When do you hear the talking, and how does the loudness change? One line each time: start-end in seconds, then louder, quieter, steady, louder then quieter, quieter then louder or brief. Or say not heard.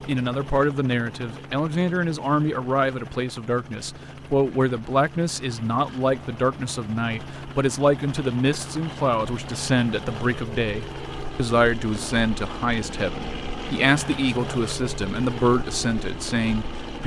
0.1-17.0 steady.